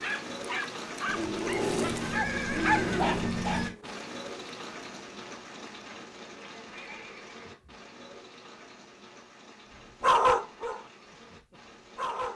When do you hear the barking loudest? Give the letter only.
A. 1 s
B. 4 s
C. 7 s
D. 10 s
D.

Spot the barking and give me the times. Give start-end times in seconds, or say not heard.
0.0-4.0, 10.0-12.3.